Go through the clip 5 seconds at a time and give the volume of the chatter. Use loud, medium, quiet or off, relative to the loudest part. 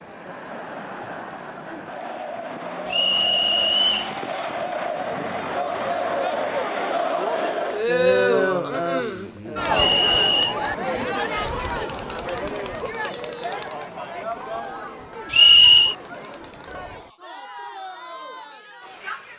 medium, loud, medium, quiet.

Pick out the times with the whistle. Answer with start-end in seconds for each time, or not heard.
2.9-4.1, 9.7-10.6, 15.3-15.9.